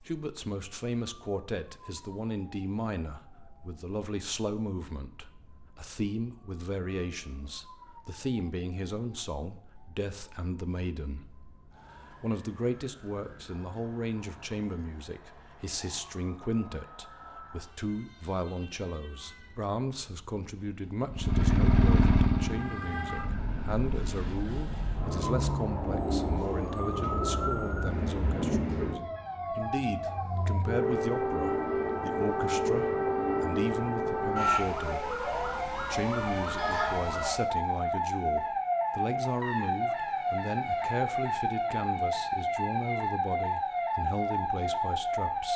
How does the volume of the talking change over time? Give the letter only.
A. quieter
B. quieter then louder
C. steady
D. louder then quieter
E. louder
C.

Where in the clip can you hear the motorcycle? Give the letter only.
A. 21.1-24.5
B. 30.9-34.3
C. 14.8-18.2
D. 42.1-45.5
A.